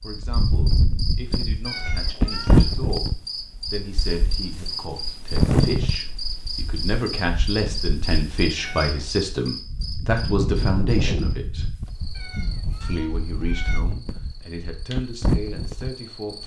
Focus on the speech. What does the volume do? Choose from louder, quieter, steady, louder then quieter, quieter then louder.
louder then quieter.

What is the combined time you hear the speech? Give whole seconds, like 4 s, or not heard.
15 s.